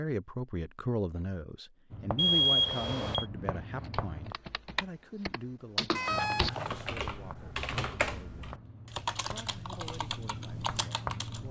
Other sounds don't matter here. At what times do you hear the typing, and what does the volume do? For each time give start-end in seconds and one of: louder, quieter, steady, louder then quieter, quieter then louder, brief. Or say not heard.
3.9-11.4 louder then quieter.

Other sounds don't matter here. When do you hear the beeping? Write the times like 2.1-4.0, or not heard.
2.1-3.2, 6.0-7.0.